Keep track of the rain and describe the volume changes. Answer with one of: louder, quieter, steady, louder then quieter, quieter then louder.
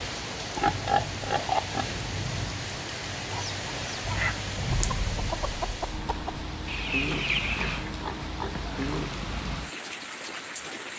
steady.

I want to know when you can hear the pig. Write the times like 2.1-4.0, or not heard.
0.6-2.0, 7.1-9.1.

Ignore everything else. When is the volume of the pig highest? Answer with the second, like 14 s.
1 s.